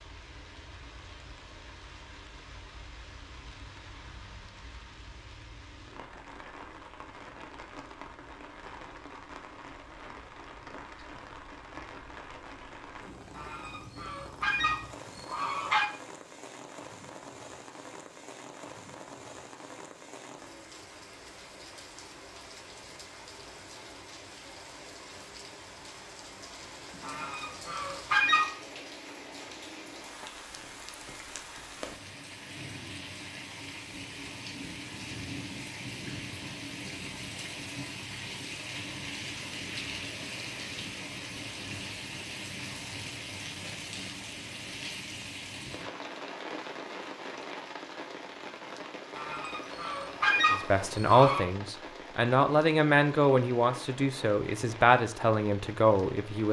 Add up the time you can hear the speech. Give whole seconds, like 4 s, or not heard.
6 s.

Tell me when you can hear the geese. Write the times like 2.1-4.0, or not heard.
13.3-15.9, 27.0-28.5, 49.1-51.5.